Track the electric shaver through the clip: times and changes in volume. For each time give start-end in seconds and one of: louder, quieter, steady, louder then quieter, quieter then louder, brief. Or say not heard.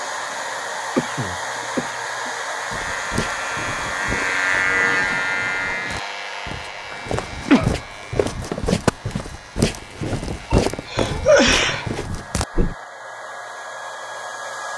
0.0-12.1 louder then quieter.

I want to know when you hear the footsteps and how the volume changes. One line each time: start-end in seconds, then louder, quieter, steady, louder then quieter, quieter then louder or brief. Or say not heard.
2.7-12.8 quieter then louder.